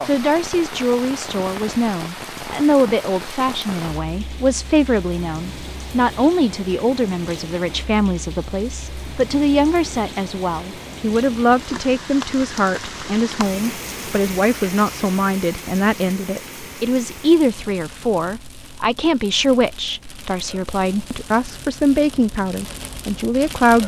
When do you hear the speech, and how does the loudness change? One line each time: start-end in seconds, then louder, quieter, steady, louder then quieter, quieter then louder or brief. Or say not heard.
0.0-23.8 steady.